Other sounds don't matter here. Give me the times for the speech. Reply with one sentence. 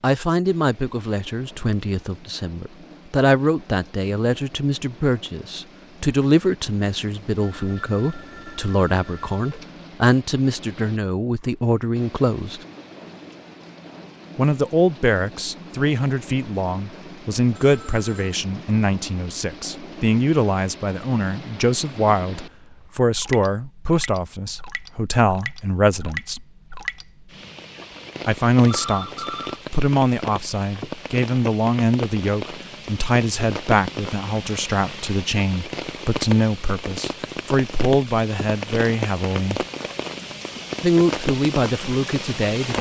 The speech can be heard from 0.0 to 12.6 s, from 14.3 to 26.4 s, from 28.2 to 39.6 s and from 40.8 to 42.7 s.